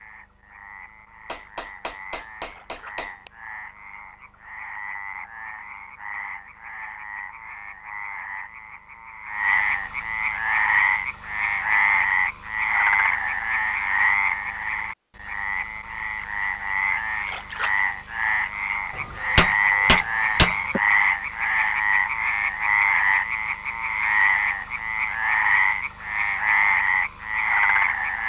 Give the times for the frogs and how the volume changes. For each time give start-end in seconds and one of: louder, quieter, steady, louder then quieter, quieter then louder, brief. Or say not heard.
0.0-28.2 louder.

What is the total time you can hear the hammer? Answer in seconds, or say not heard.
4 s.